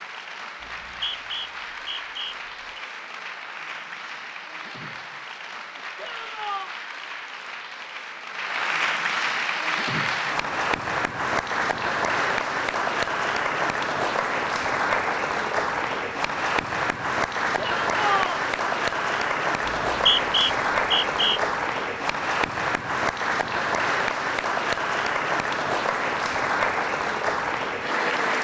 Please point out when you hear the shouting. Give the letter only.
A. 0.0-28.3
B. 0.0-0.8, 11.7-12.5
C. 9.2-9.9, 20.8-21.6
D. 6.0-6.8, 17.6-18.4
D.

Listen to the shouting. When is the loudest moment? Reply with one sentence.
The loudest moment of the shouting is at 18 seconds.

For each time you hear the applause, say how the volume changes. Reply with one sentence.
You can hear the applause from 0.0 to 28.3 s, getting louder.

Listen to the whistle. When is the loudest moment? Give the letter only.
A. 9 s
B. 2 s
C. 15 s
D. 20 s
D.